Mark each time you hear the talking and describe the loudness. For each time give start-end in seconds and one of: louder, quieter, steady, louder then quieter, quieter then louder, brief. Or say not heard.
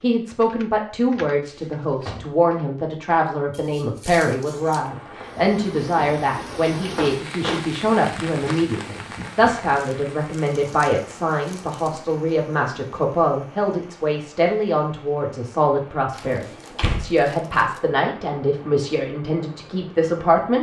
0.0-20.5 steady.